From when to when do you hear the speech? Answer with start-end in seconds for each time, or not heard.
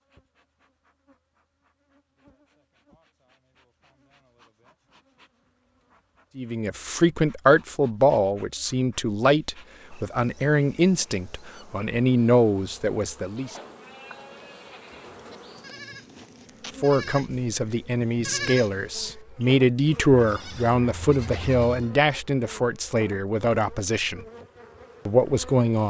6.3-13.6, 16.8-24.2, 25.1-25.8.